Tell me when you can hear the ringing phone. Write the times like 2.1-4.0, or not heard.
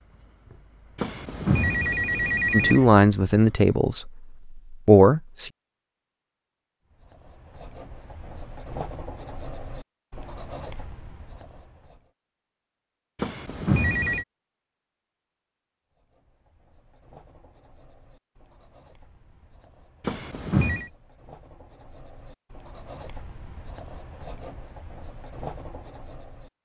0.9-2.8, 13.2-14.2, 20.0-20.9.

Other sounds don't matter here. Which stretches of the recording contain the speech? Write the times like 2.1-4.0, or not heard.
2.5-5.5.